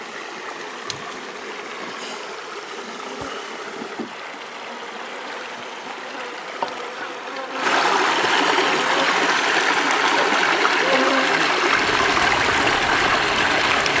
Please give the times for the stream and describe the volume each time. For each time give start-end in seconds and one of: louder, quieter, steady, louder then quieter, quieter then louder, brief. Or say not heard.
0.0-13.9 louder.